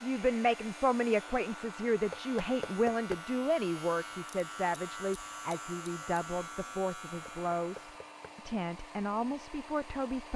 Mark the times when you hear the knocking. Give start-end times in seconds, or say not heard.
2.1-3.2, 7.2-8.2.